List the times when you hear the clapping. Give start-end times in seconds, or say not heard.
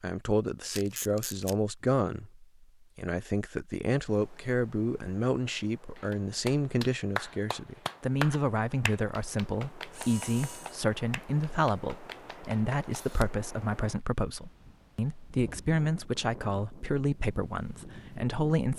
6.0-12.8.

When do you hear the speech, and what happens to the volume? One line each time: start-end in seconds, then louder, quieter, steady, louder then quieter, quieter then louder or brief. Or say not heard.
0.0-18.7 steady.